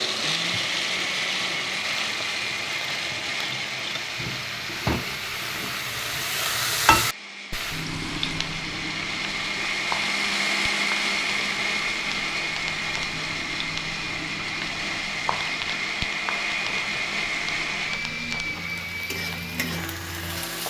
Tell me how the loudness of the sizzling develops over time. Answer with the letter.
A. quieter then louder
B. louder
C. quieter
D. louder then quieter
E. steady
D.